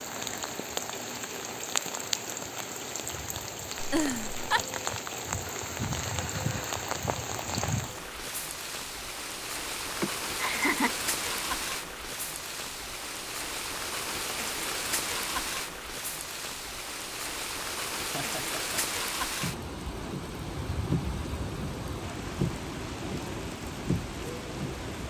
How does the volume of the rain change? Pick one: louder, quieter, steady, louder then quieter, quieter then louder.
steady.